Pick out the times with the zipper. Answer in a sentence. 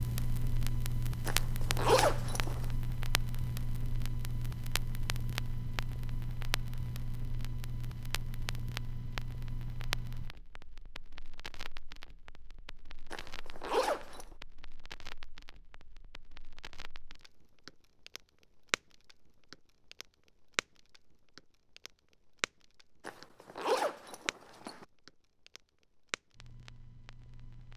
You can hear the zipper from 1.2 to 2.6 s, from 13.1 to 14.2 s and from 23.1 to 24.9 s.